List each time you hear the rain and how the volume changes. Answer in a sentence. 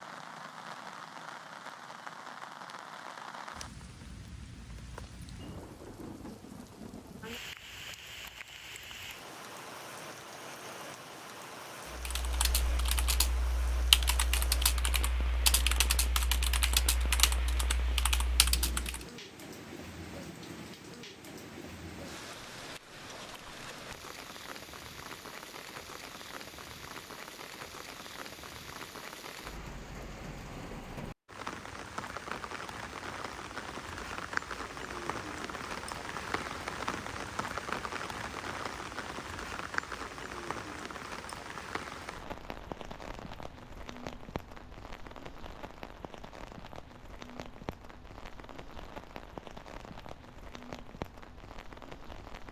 You can hear the rain from 0.0 to 52.4 s, getting louder then quieter.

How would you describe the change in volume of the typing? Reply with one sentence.
The volume of the typing goes up, then down.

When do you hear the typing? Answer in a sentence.
You can hear the typing from 11.9 to 19.1 s.